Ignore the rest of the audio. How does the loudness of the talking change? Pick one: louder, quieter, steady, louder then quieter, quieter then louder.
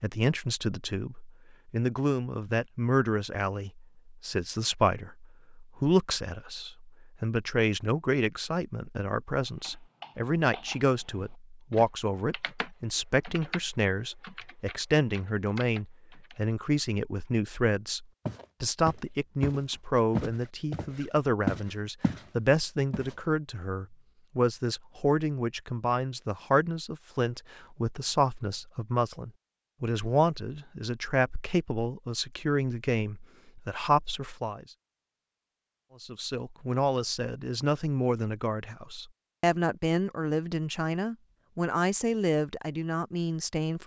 steady.